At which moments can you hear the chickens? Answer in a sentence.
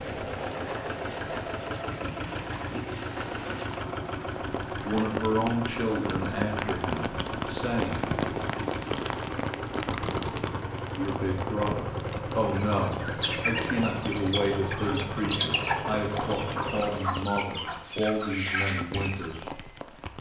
You can hear the chickens from 12.4 to 19.4 s.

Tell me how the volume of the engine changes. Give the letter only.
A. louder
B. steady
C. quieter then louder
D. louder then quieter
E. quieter
B.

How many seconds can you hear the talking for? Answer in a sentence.
The talking can be heard for 12 seconds in total.